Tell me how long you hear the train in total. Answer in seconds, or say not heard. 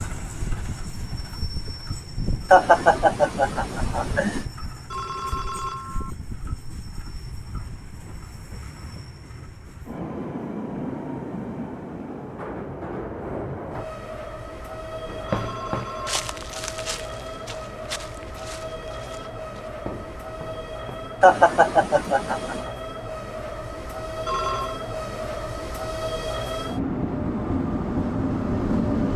29 s.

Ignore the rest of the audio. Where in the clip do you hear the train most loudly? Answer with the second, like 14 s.
29 s.